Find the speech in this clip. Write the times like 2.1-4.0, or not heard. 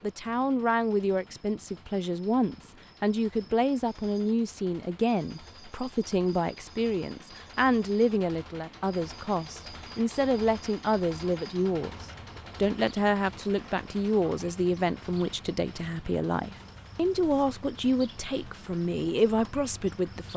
0.0-20.3.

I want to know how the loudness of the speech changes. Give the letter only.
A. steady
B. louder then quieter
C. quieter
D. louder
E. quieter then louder
A.